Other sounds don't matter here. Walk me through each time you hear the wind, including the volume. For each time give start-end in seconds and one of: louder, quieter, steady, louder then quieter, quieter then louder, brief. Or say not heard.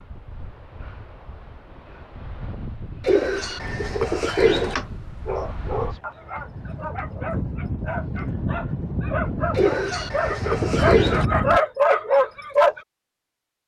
0.0-11.6 louder.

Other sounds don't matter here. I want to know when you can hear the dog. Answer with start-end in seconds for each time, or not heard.
4.8-12.8.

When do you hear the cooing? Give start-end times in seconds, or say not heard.
3.0-4.8, 9.6-11.2.